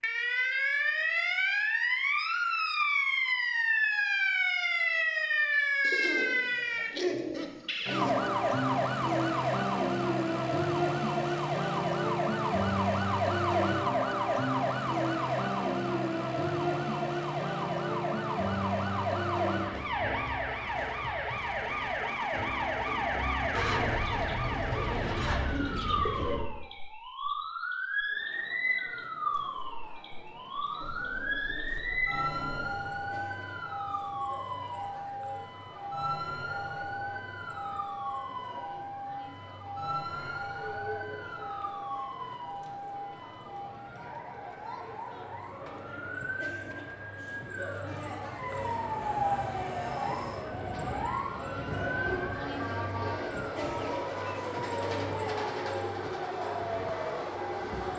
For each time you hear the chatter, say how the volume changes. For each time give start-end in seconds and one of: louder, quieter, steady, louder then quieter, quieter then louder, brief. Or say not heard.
28.1-57.9 louder.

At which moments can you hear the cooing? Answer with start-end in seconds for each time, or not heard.
5.8-8.3, 23.5-26.5, 30.8-32.8, 52.6-54.6.